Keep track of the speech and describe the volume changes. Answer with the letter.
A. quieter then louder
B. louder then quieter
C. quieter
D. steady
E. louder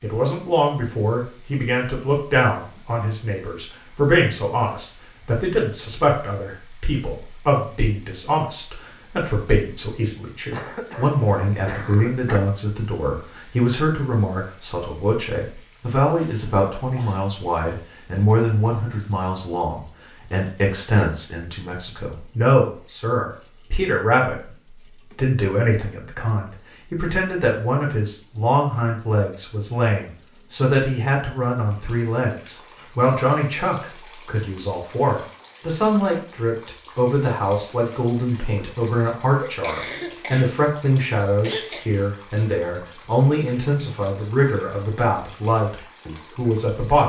D.